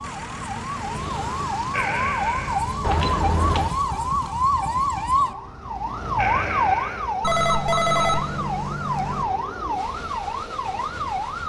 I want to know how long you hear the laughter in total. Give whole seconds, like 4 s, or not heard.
2 s.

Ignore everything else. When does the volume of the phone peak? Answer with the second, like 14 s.
8 s.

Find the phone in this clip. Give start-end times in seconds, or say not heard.
2.8-3.7, 7.2-9.2.